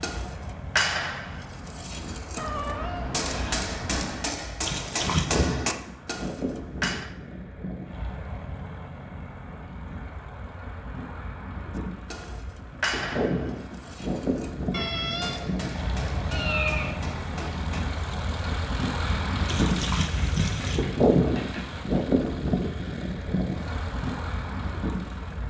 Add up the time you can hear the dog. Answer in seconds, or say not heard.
not heard.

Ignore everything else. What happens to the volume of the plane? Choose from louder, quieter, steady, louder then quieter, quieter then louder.
louder.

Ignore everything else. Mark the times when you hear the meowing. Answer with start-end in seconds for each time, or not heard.
2.4-4.3, 14.7-17.1.